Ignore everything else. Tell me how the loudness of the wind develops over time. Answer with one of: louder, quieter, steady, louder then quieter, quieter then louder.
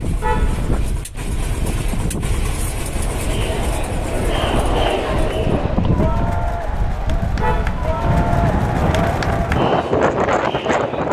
louder.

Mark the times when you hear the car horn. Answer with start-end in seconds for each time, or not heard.
0.2-0.8, 7.4-8.2.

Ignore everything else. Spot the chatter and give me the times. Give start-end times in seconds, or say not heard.
2.5-11.0.